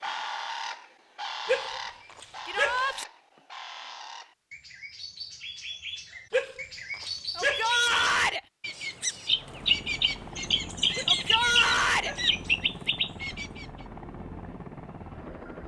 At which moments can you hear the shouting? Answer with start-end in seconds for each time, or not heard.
2.5-3.0, 7.3-8.4, 11.1-12.2.